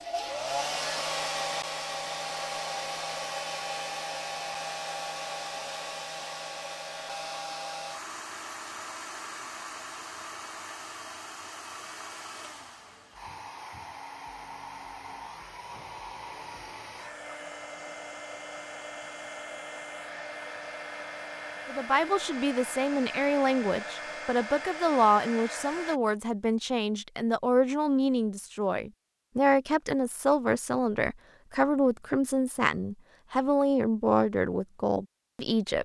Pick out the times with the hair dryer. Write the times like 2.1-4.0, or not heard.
0.0-26.0.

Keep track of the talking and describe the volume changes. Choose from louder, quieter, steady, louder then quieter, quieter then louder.
steady.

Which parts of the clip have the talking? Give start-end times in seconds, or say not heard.
21.6-35.8.